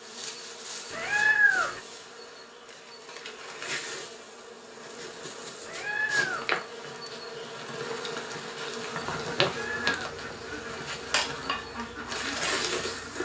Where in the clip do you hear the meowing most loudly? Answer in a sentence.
The volume of the meowing peaks at 1 second.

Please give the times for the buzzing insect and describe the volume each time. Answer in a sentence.
You can hear the buzzing insect from 0.0 to 13.2 s, getting louder.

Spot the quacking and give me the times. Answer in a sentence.
The quacking can be heard from 8.9 to 13.2 s.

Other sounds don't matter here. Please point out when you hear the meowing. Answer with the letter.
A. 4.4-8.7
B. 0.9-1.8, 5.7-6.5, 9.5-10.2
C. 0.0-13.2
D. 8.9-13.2
B.